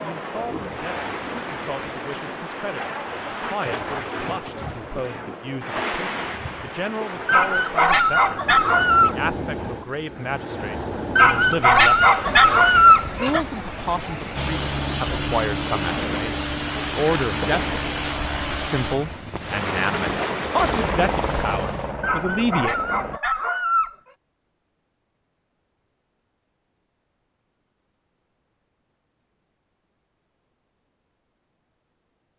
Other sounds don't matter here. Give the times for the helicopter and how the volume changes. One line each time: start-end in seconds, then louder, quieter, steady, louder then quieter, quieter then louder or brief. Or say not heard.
14.3-18.9 steady
20.6-23.2 brief.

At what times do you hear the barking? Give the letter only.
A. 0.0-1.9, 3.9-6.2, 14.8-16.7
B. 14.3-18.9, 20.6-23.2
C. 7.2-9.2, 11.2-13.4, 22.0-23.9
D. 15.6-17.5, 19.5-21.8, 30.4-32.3
C.